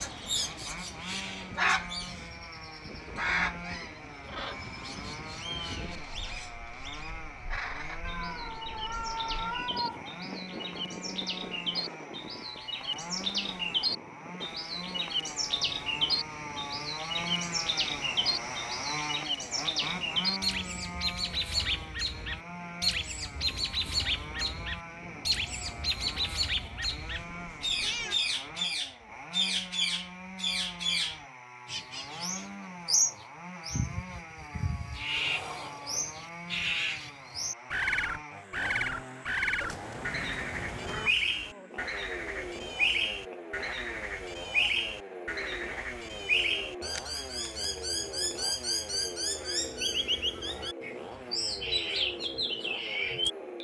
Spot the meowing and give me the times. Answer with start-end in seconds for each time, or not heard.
8.0-10.1, 27.1-28.1, 39.6-41.1.